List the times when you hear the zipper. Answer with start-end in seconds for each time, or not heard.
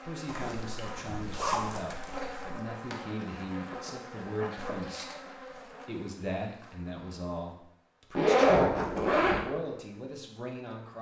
0.2-2.5, 8.2-9.4.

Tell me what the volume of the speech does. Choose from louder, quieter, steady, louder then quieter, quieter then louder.
steady.